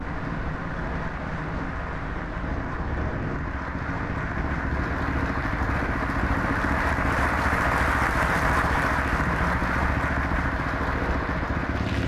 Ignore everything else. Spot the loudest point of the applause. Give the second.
8 s.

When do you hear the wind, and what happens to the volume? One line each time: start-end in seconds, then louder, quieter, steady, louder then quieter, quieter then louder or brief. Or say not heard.
0.0-12.0 steady.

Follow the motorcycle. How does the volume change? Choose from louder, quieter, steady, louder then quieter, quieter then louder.
louder.